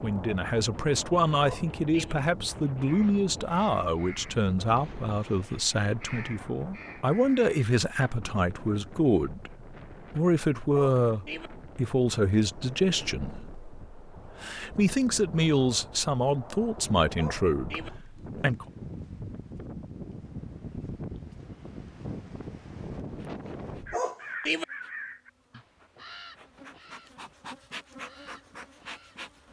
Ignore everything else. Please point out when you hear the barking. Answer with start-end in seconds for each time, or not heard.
1.4-2.1, 10.7-11.5, 17.1-17.9, 23.9-24.6.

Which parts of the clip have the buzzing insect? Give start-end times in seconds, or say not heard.
23.0-29.4.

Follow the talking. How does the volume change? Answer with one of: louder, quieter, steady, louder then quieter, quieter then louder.
steady.